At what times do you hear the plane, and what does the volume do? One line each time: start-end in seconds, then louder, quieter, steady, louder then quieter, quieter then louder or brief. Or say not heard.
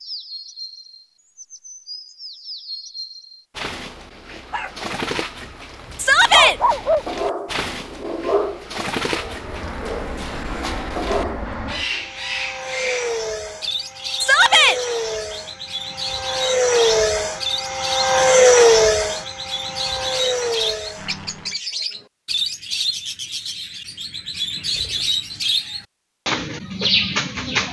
9.1-21.6 louder then quieter.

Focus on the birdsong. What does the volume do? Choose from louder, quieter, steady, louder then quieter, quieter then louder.
louder.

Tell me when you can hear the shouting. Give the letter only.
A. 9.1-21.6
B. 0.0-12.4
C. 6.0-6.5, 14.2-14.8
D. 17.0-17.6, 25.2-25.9
C.